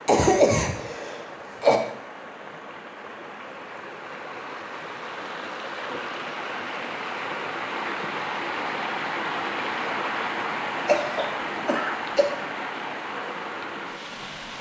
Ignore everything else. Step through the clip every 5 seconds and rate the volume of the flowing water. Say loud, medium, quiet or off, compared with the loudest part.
medium, loud, loud.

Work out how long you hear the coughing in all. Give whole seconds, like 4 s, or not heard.
3 s.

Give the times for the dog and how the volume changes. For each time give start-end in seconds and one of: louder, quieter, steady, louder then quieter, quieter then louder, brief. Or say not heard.
not heard.